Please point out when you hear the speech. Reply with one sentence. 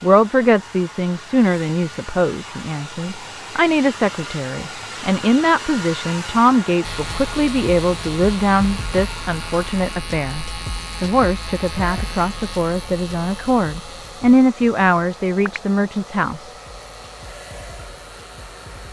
The speech can be heard from 0.0 to 16.5 s.